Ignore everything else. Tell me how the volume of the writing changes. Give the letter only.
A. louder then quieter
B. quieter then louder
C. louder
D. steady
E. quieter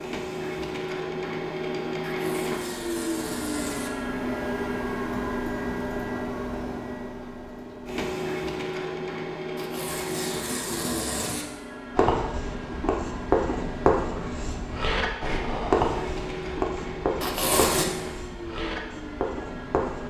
E.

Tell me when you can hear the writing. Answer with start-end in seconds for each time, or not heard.
11.9-20.0.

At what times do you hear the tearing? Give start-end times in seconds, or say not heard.
2.0-3.9, 9.6-11.4, 17.2-17.9.